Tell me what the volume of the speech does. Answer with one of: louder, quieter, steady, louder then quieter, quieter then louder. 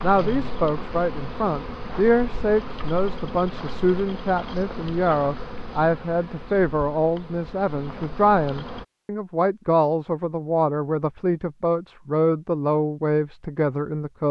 steady.